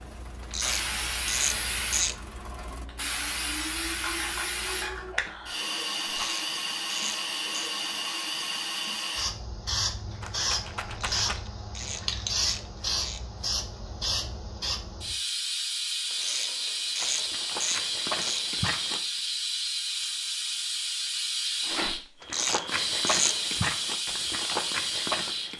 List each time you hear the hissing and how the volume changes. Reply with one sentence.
You can hear the hissing from 0.0 to 25.5 s, at a steady volume.